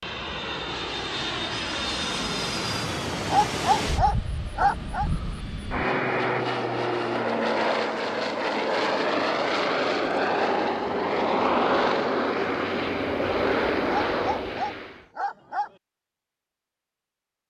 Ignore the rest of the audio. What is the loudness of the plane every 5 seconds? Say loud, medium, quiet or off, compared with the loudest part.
medium, loud, loud, off.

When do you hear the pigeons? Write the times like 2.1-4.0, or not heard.
not heard.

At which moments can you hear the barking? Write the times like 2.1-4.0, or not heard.
3.2-5.1, 14.1-15.7.